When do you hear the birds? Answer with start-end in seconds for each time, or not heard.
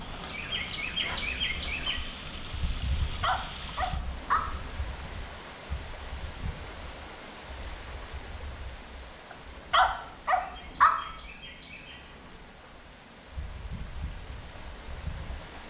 0.0-15.6.